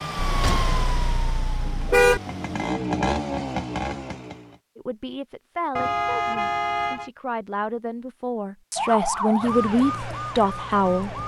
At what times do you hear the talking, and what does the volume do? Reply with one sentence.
You can hear the talking from 4.8 to 11.2 s, getting louder.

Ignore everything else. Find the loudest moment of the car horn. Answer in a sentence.
The volume of the car horn peaks at 2 seconds.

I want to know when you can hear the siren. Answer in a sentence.
The siren can be heard from 0.0 to 2.8 s and from 8.8 to 11.2 s.